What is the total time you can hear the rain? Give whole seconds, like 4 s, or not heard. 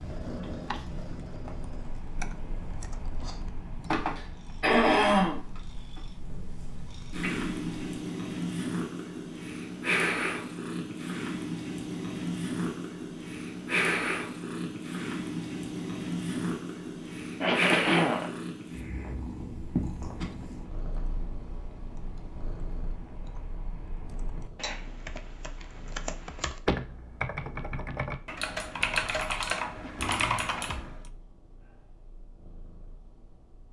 not heard.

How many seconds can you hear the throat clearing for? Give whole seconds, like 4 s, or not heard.
3 s.